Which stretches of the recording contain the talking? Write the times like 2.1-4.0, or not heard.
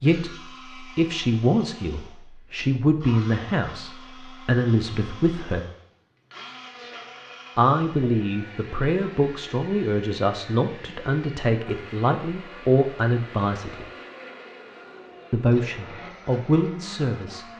0.0-5.7, 7.5-13.8, 15.3-17.4.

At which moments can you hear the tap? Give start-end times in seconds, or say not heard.
not heard.